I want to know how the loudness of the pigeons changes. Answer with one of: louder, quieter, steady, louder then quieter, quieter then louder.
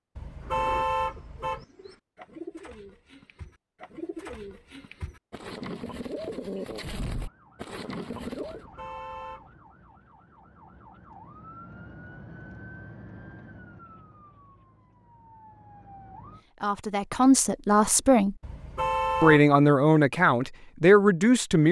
louder.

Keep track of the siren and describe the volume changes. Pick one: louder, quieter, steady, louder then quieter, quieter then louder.
louder then quieter.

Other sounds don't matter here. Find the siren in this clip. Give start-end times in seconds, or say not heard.
7.1-16.4.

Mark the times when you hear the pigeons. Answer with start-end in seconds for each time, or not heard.
0.4-8.7.